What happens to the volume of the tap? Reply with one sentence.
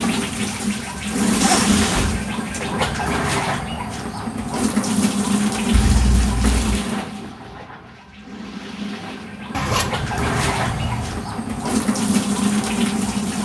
The loudness of the tap goes down, then up.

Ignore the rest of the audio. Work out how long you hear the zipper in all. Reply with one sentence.
The zipper can be heard for 4 seconds in total.